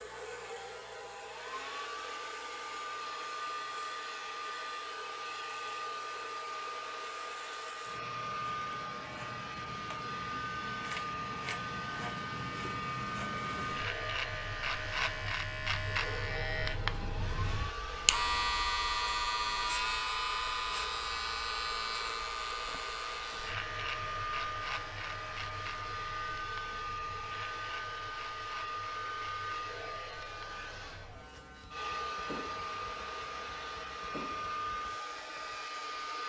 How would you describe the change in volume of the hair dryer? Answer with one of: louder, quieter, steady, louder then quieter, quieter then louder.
steady.